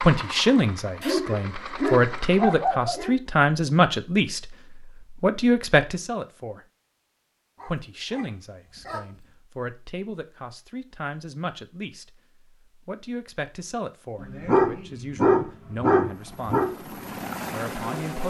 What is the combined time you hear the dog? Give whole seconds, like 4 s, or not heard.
6 s.